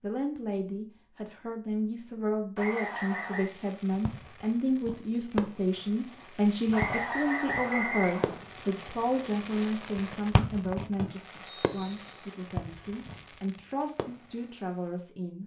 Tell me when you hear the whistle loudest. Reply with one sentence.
The volume of the whistle peaks at 8 seconds.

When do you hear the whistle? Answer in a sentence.
The whistle can be heard from 2.5 to 3.5 s, from 6.7 to 8.4 s and from 10.3 to 12.1 s.